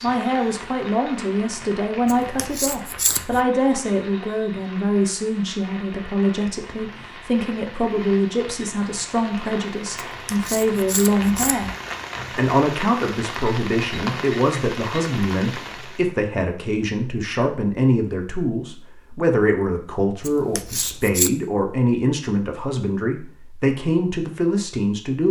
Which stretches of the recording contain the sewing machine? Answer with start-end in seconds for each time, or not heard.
not heard.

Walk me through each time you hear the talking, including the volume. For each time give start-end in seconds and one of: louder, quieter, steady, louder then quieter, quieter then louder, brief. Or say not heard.
0.0-11.7 steady
12.3-25.2 steady.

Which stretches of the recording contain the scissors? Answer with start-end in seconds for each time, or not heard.
2.0-3.5, 10.2-11.8, 20.2-21.3.